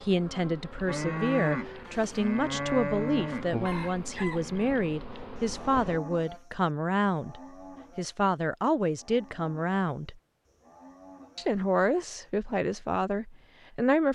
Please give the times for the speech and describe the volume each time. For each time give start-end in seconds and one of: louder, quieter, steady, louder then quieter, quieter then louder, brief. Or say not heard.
0.0-10.2 steady
11.3-14.1 brief.